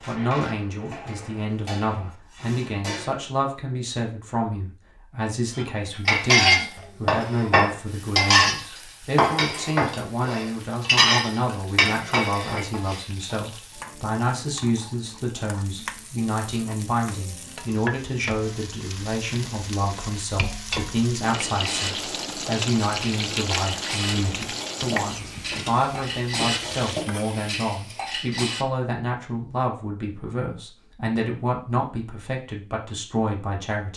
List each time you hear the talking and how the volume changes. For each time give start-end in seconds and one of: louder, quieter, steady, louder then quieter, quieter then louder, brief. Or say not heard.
0.1-33.9 steady.